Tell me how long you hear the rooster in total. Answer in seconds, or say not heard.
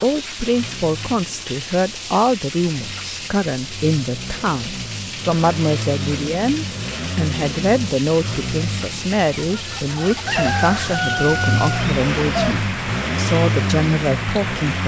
3 s.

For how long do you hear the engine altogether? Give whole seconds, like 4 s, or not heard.
15 s.